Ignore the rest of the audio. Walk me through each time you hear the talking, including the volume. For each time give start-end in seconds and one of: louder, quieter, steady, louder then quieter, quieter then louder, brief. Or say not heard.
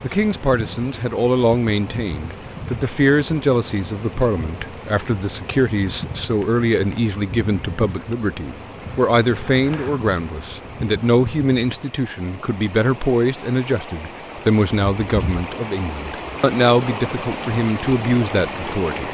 0.0-19.0 steady.